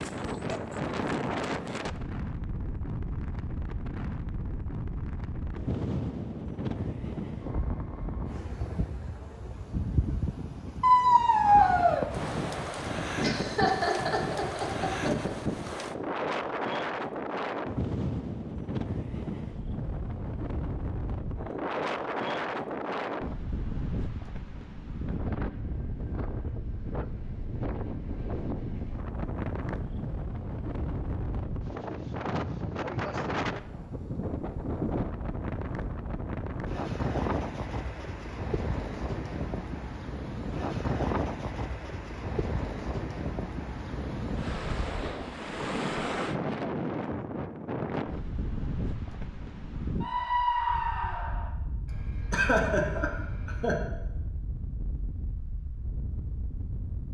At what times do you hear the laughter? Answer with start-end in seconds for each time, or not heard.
13.2-15.3, 52.3-53.8.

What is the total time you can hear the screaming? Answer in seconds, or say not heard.
3 s.